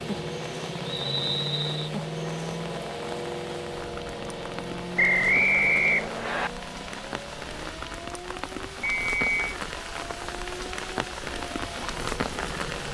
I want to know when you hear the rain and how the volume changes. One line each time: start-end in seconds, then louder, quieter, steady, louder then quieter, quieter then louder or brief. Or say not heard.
0.0-12.9 louder.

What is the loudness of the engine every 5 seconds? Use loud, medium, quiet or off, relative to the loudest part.
loud, medium, medium.